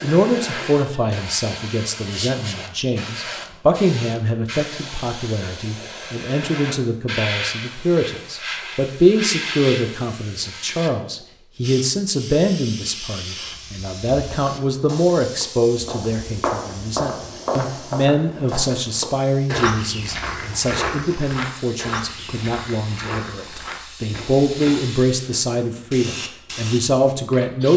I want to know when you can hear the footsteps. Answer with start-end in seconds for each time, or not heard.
14.2-25.1.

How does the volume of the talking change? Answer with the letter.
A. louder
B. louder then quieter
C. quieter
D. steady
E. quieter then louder
D.